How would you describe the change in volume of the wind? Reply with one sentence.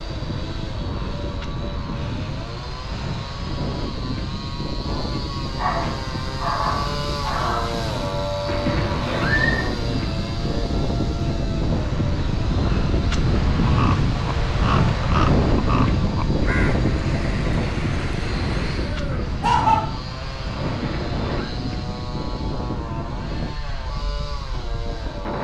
The volume of the wind goes up, then down.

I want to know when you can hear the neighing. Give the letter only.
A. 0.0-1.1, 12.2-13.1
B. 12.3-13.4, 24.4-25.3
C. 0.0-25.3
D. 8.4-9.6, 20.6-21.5
D.